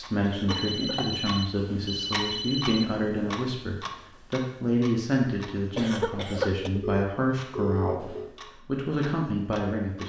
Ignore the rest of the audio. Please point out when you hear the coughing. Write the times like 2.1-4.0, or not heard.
0.2-1.1, 5.5-6.7.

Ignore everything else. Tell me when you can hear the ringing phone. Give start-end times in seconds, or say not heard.
0.5-2.9, 6.8-8.3.